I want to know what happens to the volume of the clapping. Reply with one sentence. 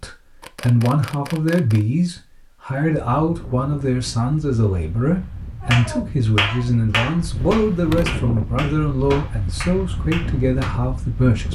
The volume of the clapping goes down.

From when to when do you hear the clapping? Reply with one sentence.
The clapping can be heard from 5.6 to 10.8 s.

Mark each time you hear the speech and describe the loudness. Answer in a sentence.
You can hear the speech from 0.0 to 11.5 s, at a steady volume.